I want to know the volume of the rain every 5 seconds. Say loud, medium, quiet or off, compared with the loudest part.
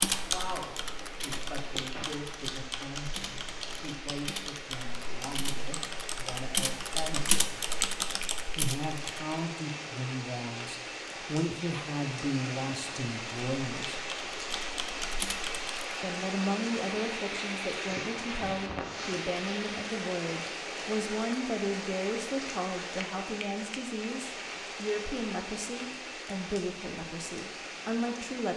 medium, medium, loud, loud, loud, medium.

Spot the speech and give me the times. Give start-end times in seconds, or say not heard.
0.1-7.7, 8.6-14.1, 16.0-28.5.